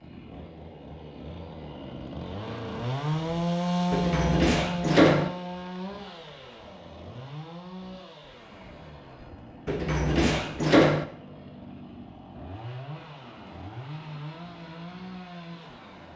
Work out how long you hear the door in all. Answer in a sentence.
You can hear the door for 3 seconds altogether.